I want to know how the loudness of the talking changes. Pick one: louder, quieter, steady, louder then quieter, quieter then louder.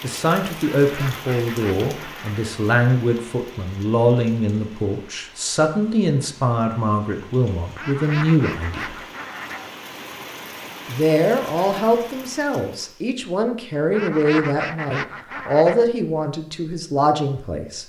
steady.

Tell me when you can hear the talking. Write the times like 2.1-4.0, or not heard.
0.0-8.9, 10.8-17.8.